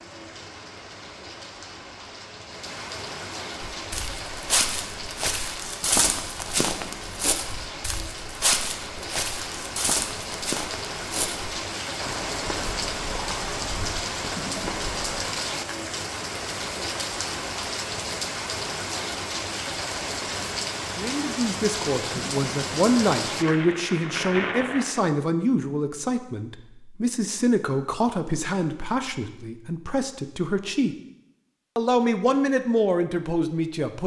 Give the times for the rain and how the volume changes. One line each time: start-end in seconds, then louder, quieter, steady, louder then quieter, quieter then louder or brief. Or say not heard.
0.0-25.1 louder.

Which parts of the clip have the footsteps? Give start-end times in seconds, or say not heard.
3.7-15.2.